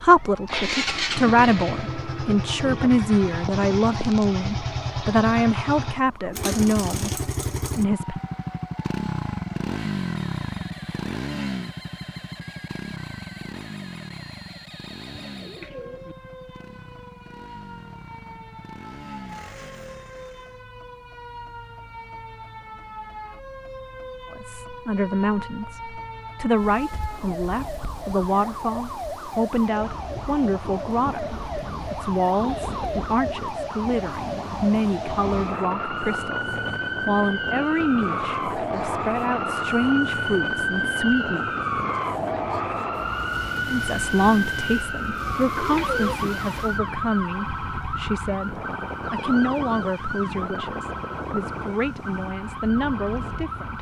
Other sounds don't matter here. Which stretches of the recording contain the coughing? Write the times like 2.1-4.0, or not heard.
not heard.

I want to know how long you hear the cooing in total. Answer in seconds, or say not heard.
2 s.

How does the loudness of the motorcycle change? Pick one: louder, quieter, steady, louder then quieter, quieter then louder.
quieter.